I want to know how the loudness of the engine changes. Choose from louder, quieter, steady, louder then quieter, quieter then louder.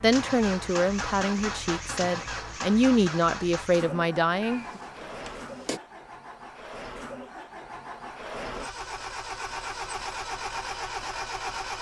quieter then louder.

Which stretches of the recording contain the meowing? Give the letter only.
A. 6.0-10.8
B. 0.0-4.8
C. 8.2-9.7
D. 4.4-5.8
D.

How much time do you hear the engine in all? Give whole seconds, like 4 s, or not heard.
12 s.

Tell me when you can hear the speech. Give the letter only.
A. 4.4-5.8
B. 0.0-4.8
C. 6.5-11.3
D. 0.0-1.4
B.